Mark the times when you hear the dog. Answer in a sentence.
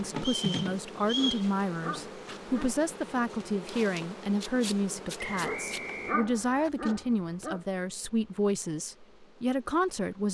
The dog can be heard from 1.0 to 2.8 s and from 5.2 to 7.6 s.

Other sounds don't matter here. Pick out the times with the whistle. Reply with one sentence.
You can hear the whistle from 0.1 to 1.4 s and from 5.4 to 6.7 s.